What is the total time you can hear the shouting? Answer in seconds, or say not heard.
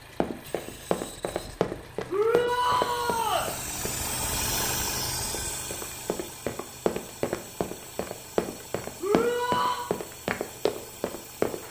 2 s.